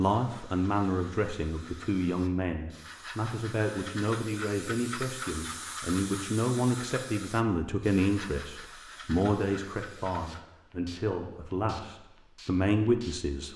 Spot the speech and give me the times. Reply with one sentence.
The speech can be heard from 0.0 to 13.5 s.